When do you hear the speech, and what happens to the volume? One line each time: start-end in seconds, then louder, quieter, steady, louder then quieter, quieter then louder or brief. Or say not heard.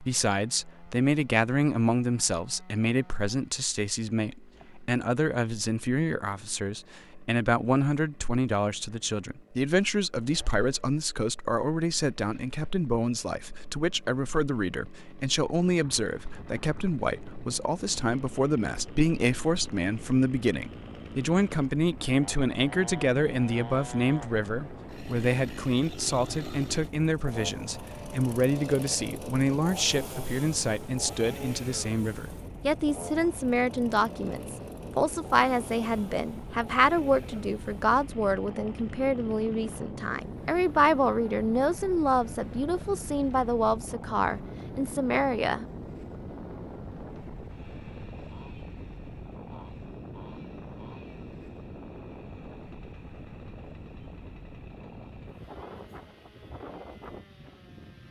0.0-45.6 steady.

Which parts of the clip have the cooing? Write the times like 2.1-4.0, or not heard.
not heard.